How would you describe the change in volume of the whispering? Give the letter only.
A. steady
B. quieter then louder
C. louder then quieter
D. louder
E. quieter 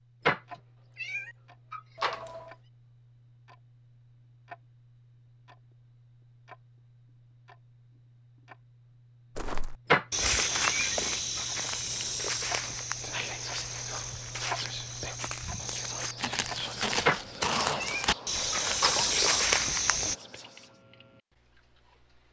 D.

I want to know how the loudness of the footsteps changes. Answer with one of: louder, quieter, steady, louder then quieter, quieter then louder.
quieter then louder.